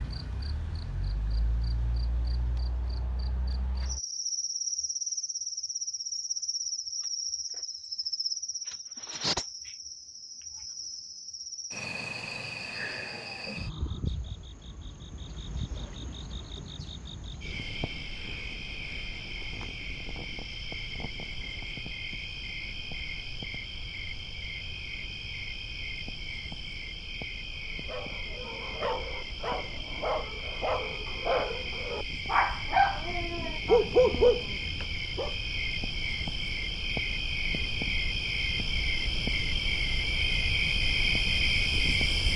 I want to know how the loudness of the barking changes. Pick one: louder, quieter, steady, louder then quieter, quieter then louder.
louder.